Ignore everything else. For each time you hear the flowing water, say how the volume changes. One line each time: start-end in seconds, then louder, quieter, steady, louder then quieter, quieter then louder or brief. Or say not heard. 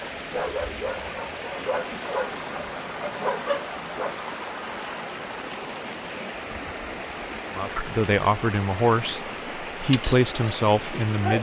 0.0-11.3 steady.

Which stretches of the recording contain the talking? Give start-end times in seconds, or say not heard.
7.5-11.3.